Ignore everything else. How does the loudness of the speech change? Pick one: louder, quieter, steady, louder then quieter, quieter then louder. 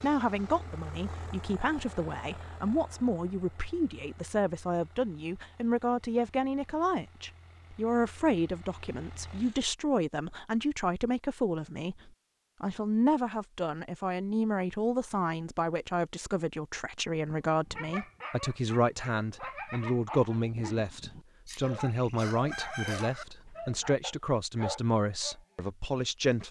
steady.